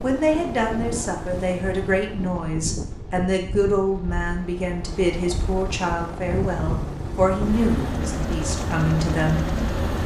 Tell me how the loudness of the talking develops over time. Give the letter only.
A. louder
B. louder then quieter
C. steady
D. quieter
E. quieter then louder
C.